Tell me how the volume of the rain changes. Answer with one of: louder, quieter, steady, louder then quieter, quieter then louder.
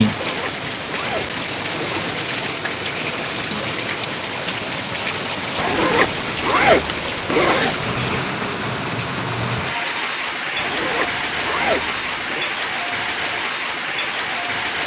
steady.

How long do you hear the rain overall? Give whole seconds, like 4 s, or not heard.
15 s.